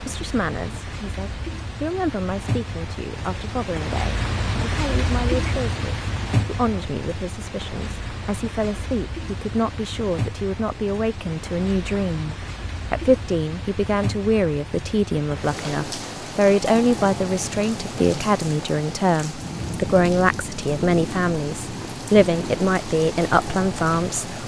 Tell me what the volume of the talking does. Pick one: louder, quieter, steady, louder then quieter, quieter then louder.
louder.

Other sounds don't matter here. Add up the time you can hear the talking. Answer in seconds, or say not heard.
24 s.